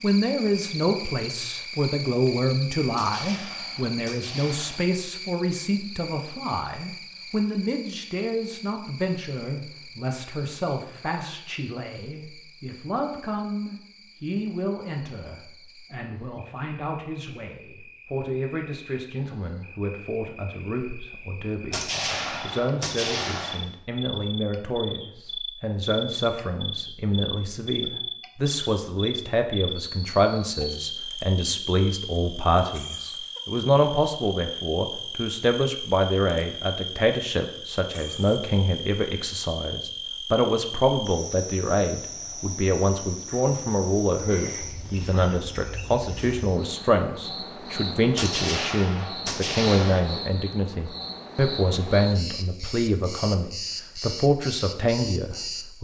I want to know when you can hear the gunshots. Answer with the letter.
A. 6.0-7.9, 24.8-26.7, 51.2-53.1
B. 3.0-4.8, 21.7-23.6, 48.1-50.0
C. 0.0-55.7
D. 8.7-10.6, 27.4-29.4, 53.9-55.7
B.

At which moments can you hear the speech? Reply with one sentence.
The speech can be heard from 0.0 to 55.7 s.